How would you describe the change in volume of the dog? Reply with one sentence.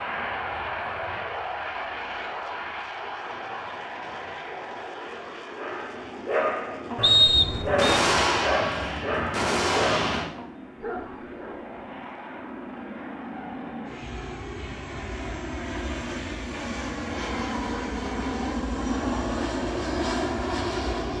The loudness of the dog goes down.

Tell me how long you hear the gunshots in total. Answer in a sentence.
The gunshots can be heard for 3 seconds in total.